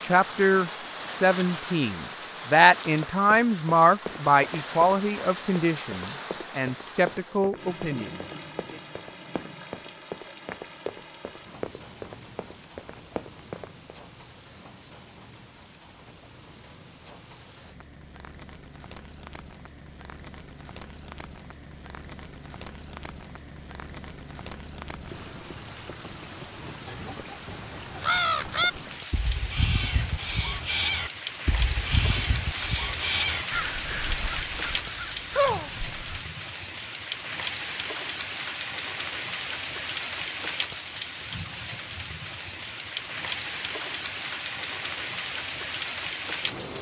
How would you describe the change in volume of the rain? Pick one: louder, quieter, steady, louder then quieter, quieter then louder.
quieter then louder.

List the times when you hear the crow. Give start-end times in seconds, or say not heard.
26.9-36.2.